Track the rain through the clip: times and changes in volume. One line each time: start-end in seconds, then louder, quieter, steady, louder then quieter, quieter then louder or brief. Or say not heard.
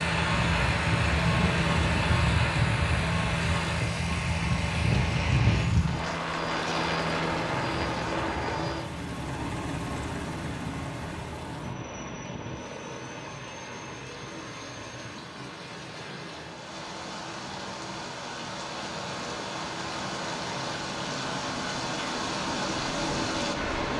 0.0-23.9 quieter then louder.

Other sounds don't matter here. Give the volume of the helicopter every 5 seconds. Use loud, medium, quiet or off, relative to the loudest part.
loud, loud, medium, quiet, medium.